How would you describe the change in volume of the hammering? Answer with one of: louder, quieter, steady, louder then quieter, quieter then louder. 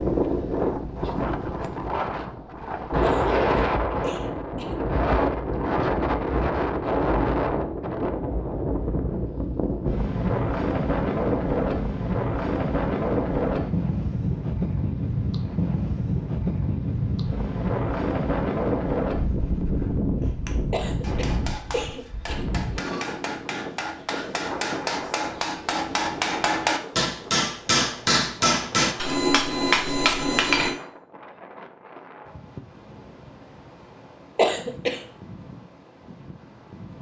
louder.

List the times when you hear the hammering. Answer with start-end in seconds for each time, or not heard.
20.2-30.8.